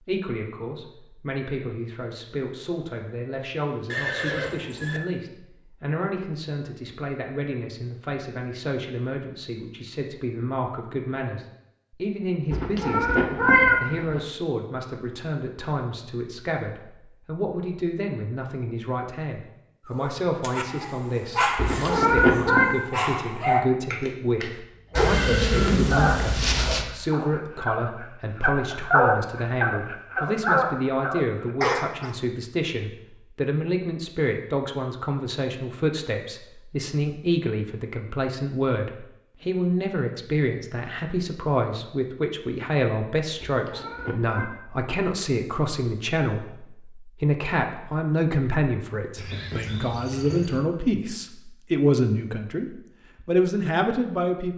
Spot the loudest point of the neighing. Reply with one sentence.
The volume of the neighing peaks at 26 seconds.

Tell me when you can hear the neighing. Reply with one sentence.
You can hear the neighing from 3.9 to 5.0 s, from 24.9 to 26.9 s and from 49.1 to 50.6 s.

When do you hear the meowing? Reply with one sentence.
You can hear the meowing from 12.5 to 14.2 s, from 21.6 to 22.7 s and from 43.4 to 44.5 s.